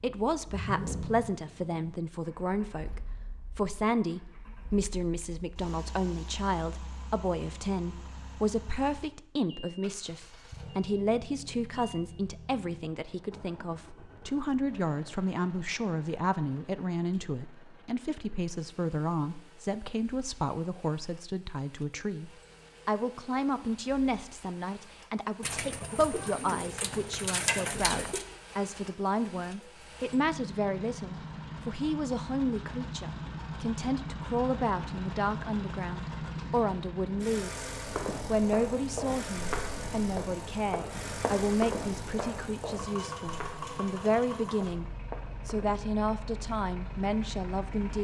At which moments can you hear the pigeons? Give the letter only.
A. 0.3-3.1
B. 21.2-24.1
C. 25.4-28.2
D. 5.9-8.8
C.